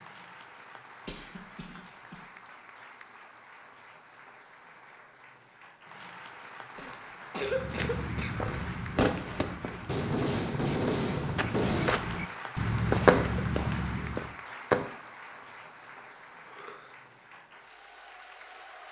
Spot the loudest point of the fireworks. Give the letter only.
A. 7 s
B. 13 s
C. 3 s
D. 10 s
B.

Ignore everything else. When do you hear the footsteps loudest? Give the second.
13 s.